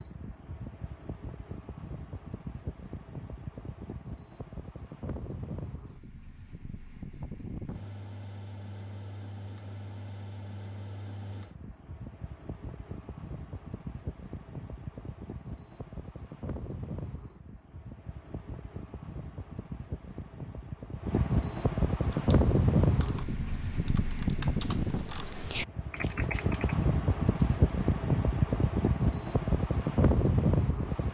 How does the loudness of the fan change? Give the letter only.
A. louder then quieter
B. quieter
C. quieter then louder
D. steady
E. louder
E.